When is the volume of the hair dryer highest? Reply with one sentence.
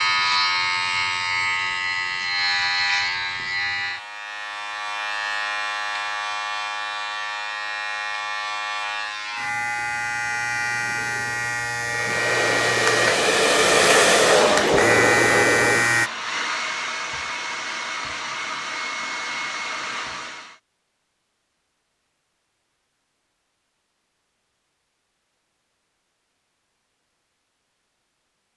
The loudest moment of the hair dryer is at 14 seconds.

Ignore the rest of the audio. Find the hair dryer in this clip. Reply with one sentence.
You can hear the hair dryer from 11.8 to 20.6 s.